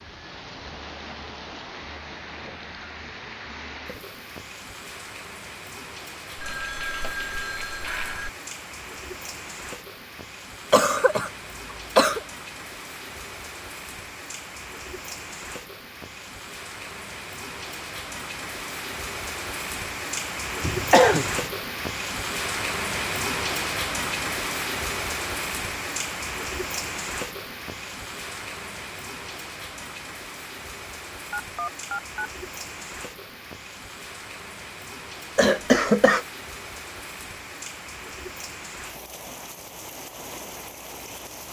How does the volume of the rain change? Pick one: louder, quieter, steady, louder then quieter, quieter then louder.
louder then quieter.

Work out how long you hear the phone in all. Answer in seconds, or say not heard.
3 s.